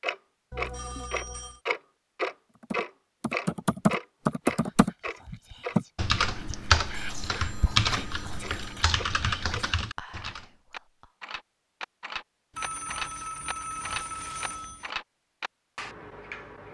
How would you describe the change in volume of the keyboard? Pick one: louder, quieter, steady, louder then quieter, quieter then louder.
quieter.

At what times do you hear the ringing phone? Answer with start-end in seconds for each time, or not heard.
0.5-1.6, 6.9-8.9, 12.5-14.9.